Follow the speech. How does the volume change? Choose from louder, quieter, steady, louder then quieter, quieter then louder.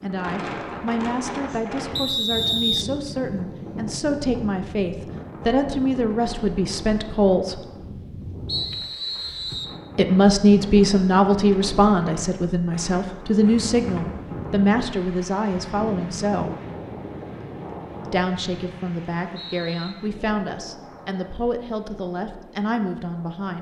louder then quieter.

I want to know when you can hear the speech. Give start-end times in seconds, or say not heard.
0.0-7.6, 9.9-16.5, 18.1-23.5.